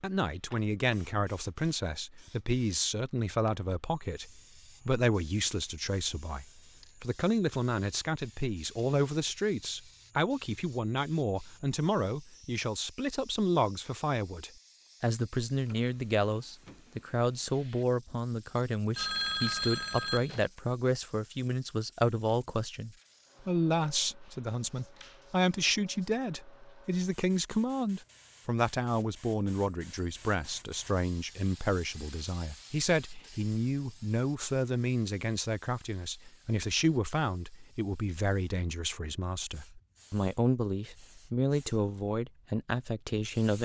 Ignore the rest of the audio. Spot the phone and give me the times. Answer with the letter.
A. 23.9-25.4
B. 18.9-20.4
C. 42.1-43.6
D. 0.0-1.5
B.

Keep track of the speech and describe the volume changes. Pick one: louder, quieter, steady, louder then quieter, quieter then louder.
steady.